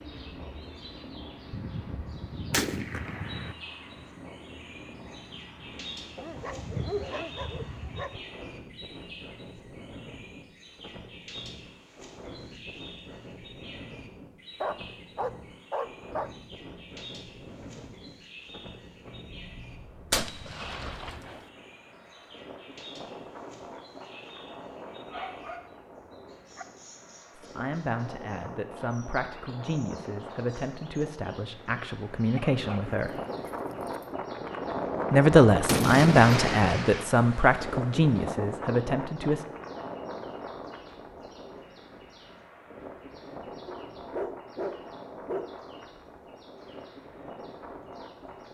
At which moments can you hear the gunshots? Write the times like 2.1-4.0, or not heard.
1.5-3.5, 20.1-21.4, 35.5-37.0.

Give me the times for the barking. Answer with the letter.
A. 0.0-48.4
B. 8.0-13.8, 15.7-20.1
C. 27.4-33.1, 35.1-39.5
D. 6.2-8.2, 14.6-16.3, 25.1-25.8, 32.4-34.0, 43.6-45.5
D.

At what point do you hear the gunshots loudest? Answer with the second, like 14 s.
36 s.